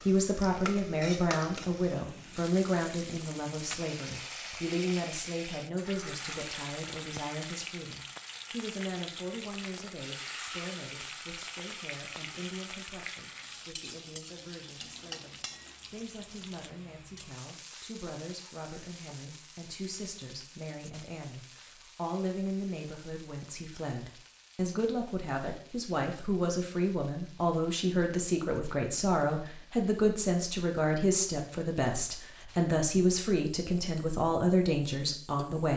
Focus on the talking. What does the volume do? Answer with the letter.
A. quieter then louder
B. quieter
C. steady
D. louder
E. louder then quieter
A.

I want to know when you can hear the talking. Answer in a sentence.
You can hear the talking from 0.0 to 35.7 s.